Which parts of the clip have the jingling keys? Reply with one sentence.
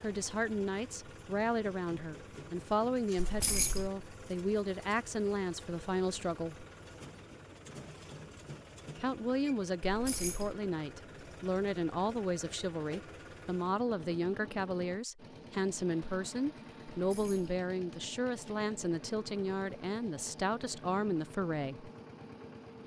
The jingling keys can be heard from 3.1 to 3.9 s, from 9.8 to 10.6 s and from 17.0 to 17.6 s.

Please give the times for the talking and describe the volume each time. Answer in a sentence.
The talking can be heard from 0.0 to 6.7 s, at a steady volume; and from 8.9 to 21.9 s, at a steady volume.